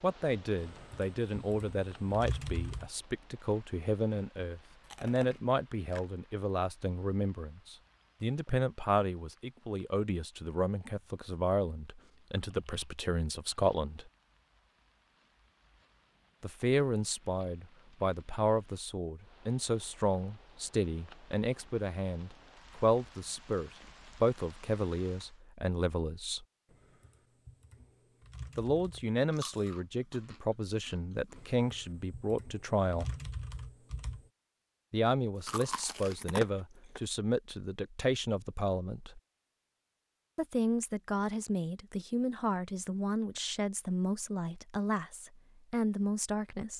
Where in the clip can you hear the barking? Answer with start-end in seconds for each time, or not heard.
not heard.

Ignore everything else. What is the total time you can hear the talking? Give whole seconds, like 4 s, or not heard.
39 s.